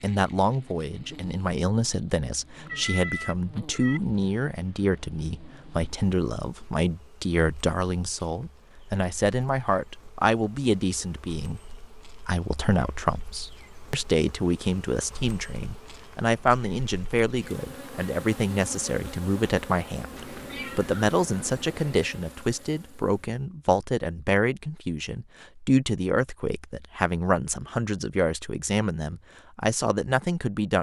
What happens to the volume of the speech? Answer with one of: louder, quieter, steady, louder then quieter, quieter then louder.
steady.